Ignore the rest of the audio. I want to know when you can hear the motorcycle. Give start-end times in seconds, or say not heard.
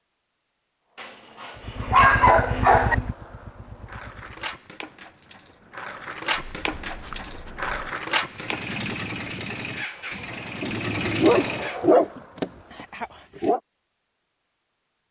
1.6-4.5, 8.3-11.8.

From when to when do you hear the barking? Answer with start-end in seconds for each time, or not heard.
1.0-3.0, 6.4-7.7, 10.6-13.6.